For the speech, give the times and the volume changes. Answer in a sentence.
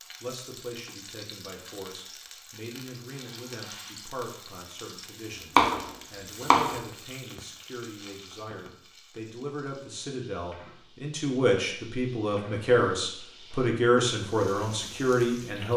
The speech can be heard from 0.2 to 15.7 s, getting louder.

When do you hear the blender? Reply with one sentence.
The blender can't be heard in this clip.